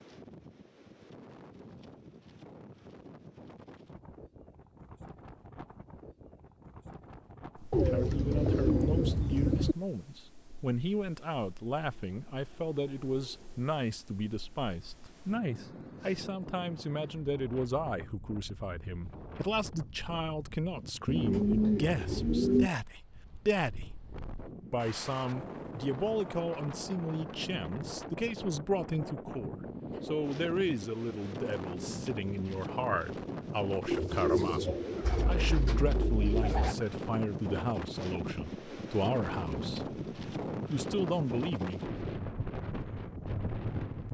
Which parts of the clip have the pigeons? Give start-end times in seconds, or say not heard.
7.7-9.8, 21.1-22.7, 33.9-36.8.